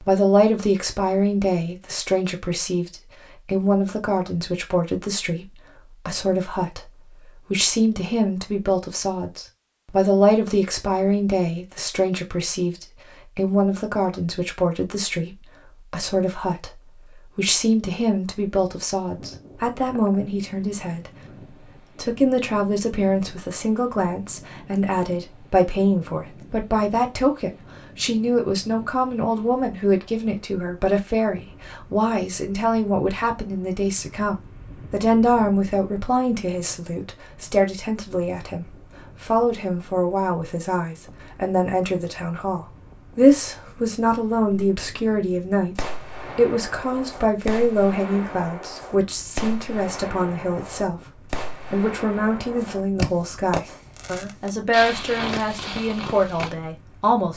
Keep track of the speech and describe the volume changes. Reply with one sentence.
The loudness of the speech stays about the same.